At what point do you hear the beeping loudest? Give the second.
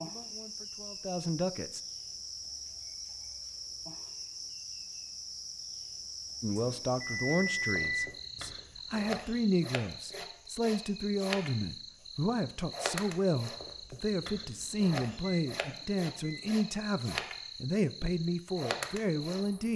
8 s.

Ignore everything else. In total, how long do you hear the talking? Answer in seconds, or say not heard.
15 s.